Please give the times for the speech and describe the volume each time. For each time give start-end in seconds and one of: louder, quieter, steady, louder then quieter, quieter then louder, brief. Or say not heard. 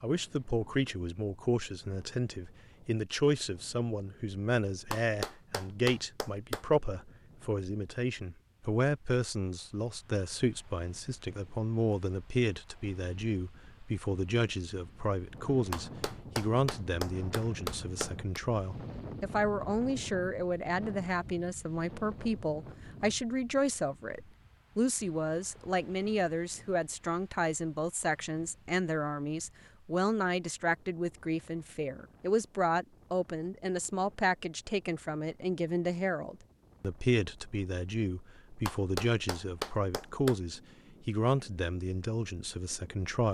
0.0-43.2 steady.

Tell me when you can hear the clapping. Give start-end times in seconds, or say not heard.
4.8-6.7, 15.7-18.4, 38.5-40.4.